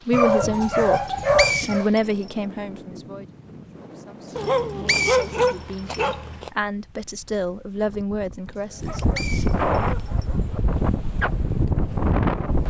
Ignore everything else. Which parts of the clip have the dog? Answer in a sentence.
You can hear the dog from 0.1 to 1.9 s, from 4.3 to 6.5 s and from 8.7 to 10.6 s.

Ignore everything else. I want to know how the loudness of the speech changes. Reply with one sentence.
The loudness of the speech goes down, then up.